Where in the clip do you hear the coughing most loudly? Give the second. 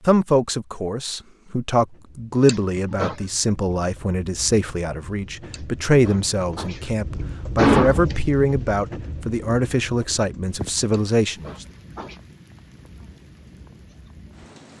8 s.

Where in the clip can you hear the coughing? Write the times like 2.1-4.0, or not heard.
2.5-3.2, 5.5-6.8, 7.5-8.2, 10.9-12.2.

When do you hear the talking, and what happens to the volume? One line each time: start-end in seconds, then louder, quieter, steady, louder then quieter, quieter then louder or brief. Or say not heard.
0.1-11.7 steady.